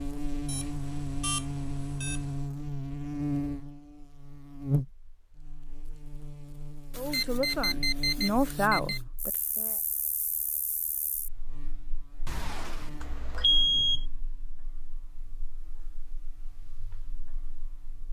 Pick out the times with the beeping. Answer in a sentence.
You can hear the beeping from 0.5 to 2.5 s, from 6.9 to 9.0 s and from 12.2 to 14.1 s.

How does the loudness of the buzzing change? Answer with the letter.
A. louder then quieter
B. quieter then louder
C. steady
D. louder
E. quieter
E.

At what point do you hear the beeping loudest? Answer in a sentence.
The loudest moment of the beeping is at 14 seconds.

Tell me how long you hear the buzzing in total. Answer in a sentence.
You can hear the buzzing for 18 seconds altogether.